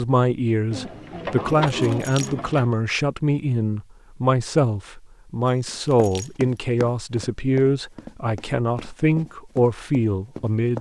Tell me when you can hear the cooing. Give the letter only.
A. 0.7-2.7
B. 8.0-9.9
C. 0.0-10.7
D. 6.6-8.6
A.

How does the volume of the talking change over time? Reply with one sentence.
The volume of the talking stays about the same.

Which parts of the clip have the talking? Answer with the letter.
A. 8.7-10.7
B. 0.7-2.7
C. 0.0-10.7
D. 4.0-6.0
C.